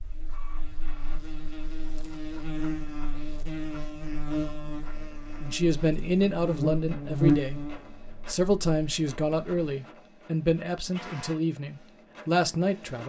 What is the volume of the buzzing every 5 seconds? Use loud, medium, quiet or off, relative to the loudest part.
medium, loud, off.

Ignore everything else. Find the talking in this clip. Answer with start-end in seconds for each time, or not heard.
5.4-7.7, 8.2-13.0.